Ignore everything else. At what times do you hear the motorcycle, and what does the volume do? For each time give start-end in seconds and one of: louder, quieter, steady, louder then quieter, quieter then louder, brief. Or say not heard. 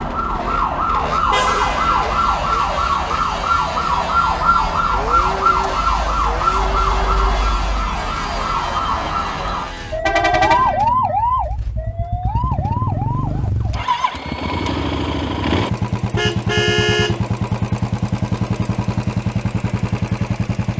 0.0-20.7 louder.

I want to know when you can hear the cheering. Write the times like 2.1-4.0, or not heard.
not heard.